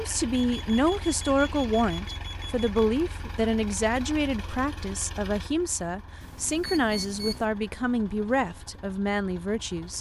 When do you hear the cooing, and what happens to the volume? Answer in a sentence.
You can't hear the cooing here.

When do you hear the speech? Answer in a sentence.
The speech can be heard from 0.0 to 9.9 s.